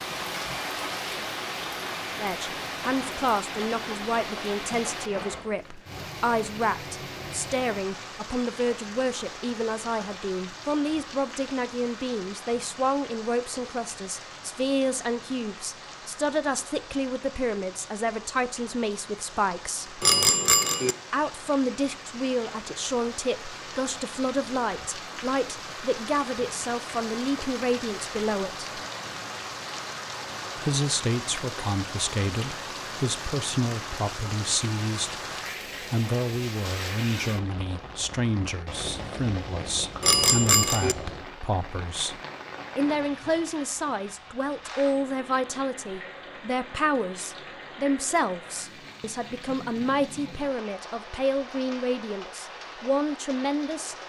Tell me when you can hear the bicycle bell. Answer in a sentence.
You can hear the bicycle bell from 20.0 to 20.9 s and from 40.0 to 41.0 s.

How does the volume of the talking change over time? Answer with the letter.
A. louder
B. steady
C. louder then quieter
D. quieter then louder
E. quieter
B.